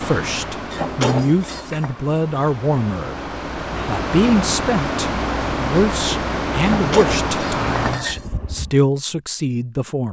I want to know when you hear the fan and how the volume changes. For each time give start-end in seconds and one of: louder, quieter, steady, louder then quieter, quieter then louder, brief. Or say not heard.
0.0-8.8 louder.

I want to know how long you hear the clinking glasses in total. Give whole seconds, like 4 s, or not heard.
3 s.